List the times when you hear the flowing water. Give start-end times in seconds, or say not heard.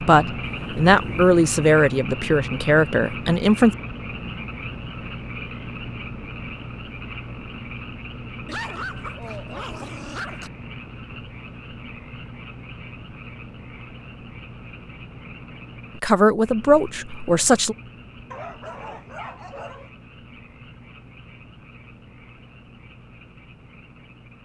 not heard.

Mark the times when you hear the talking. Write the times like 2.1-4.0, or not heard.
0.0-3.8, 16.0-17.8.